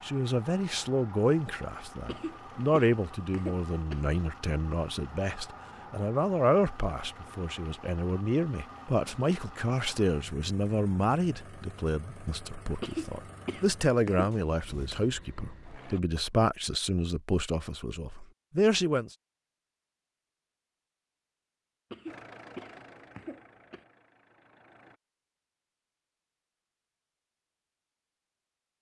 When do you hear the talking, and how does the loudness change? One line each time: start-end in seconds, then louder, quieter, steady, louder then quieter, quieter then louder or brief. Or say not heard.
0.0-19.1 steady.